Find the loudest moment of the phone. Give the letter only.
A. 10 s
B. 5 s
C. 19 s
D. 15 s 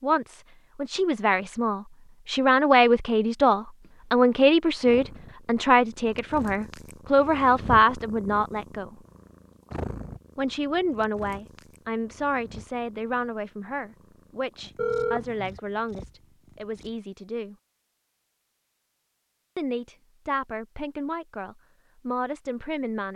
D.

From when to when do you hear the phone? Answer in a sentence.
The phone can be heard from 3.8 to 4.2 s and from 14.8 to 15.6 s.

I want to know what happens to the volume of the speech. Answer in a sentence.
The loudness of the speech goes down.